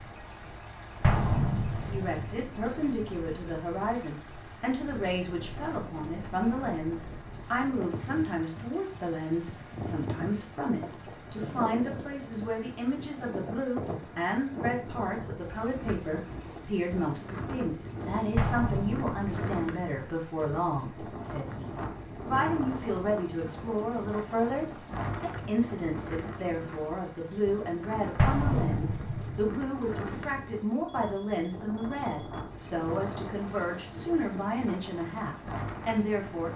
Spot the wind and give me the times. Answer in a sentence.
You can hear the wind from 0.0 to 36.5 s.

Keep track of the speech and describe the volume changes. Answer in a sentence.
The volume of the speech stays about the same.